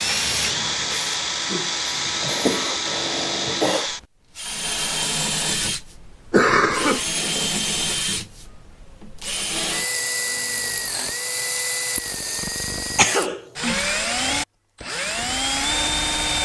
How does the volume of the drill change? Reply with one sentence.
The volume of the drill stays about the same.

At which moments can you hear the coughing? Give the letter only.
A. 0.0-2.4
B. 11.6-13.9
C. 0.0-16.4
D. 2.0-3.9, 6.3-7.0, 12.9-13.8
D.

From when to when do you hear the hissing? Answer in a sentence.
You can hear the hissing from 0.0 to 2.4 s.